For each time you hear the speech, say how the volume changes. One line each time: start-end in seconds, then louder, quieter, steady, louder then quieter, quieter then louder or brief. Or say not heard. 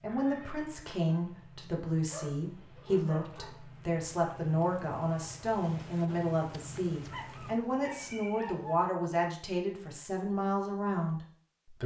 0.0-11.8 steady.